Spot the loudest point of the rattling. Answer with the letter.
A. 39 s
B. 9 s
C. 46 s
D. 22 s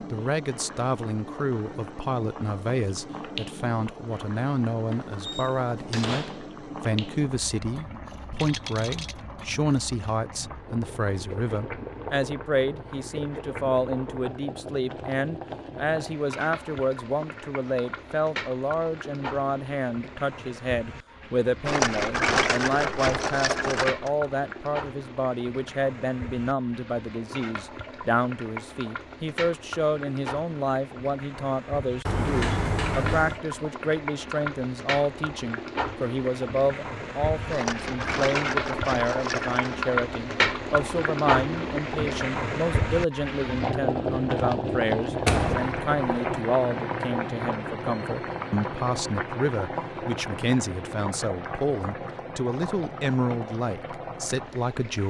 D.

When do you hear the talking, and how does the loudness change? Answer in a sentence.
The talking can be heard from 0.1 to 55.0 s, at a steady volume.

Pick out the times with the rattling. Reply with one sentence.
The rattling can be heard from 8.3 to 9.2 s, from 21.6 to 24.1 s and from 37.5 to 39.8 s.